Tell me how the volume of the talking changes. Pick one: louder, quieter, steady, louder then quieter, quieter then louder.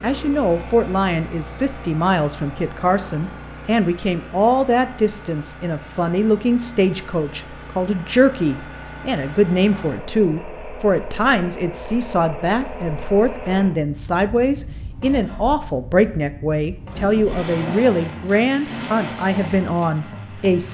steady.